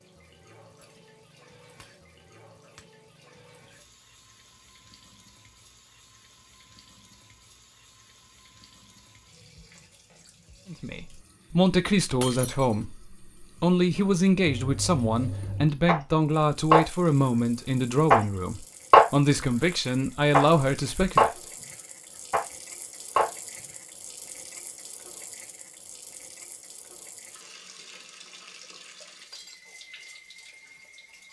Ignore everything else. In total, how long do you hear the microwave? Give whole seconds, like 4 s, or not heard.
not heard.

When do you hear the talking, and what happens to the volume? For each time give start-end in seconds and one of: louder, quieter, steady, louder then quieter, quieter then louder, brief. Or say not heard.
10.7-21.3 steady.